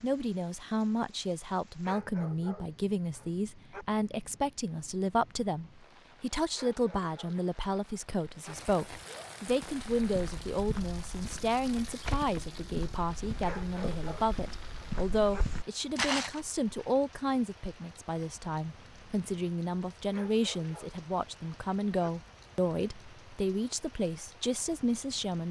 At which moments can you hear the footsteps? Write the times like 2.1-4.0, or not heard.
9.4-16.4.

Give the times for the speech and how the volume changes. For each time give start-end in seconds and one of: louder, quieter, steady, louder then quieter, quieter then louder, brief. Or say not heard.
0.0-25.4 steady.